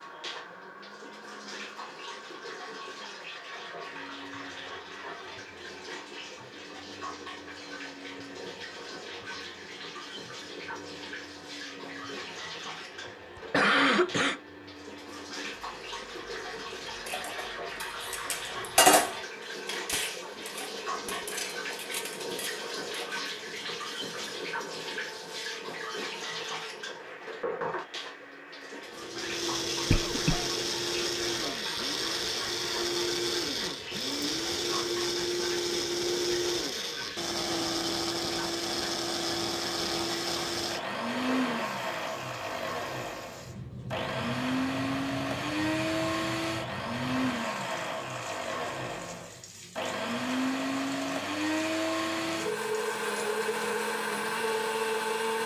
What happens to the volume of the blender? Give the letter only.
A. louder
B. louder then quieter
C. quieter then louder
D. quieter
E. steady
A.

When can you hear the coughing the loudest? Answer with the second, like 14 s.
14 s.